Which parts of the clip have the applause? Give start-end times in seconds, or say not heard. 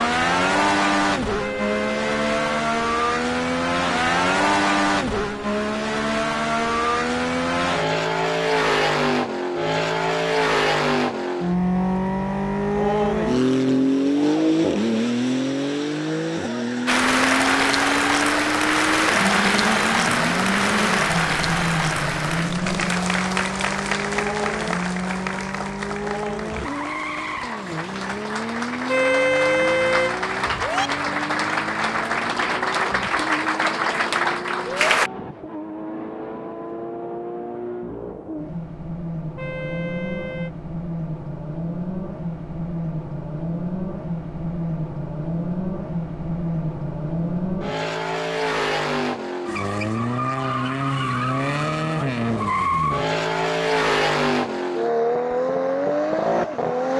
16.9-35.1.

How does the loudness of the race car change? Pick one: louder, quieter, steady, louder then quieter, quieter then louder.
quieter then louder.